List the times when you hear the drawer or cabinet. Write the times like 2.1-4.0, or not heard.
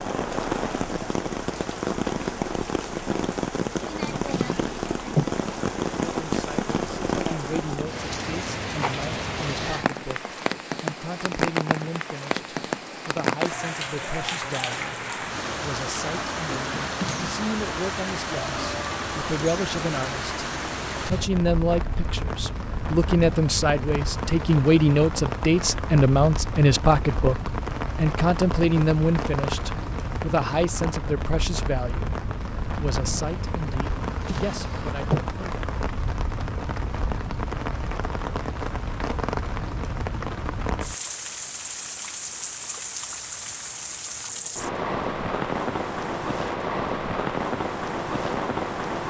4.0-5.3, 16.6-17.4, 34.0-35.2.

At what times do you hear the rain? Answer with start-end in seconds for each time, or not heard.
0.0-49.0.